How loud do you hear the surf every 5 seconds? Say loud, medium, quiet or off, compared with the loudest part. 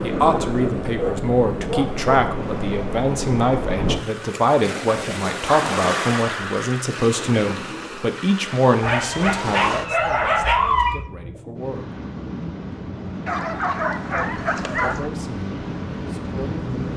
loud, loud, medium, loud.